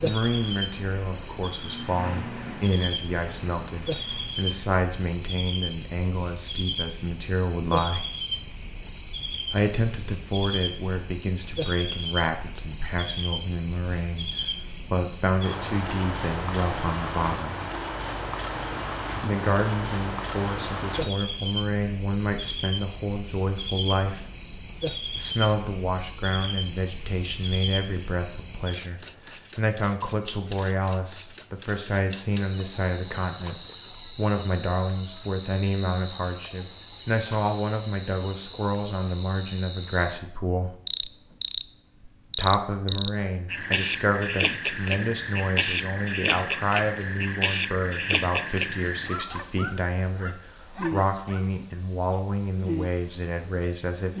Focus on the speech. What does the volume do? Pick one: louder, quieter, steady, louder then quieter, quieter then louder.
steady.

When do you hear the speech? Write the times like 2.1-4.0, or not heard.
0.0-8.1, 9.5-17.6, 19.2-24.2, 25.1-40.7, 42.4-54.1.